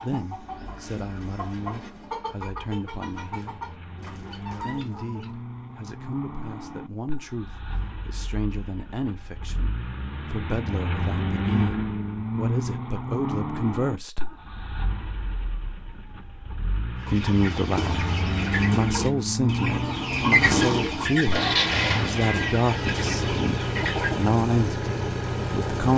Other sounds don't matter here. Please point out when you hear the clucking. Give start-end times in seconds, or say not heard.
0.0-5.3, 16.9-24.3.